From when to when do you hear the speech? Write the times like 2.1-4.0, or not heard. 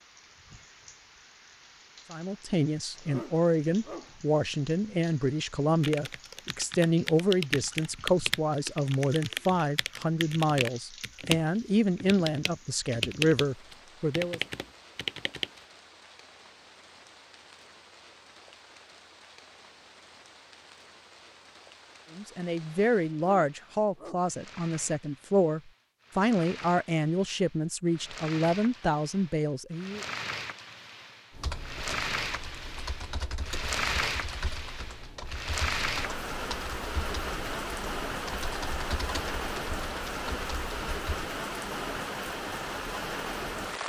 2.1-14.4, 22.1-30.1.